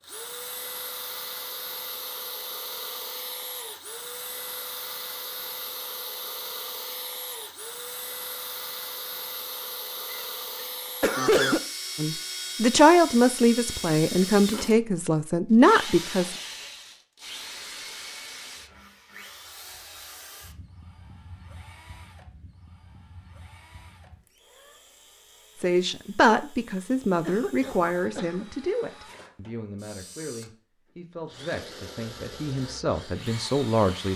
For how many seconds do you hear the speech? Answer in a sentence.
The speech can be heard for 13 seconds in total.